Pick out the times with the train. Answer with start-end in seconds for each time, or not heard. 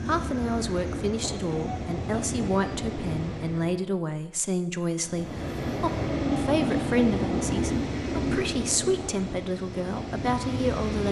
0.0-3.8, 5.0-11.0.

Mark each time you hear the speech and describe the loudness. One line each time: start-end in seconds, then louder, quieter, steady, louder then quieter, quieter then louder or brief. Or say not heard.
0.1-11.0 steady.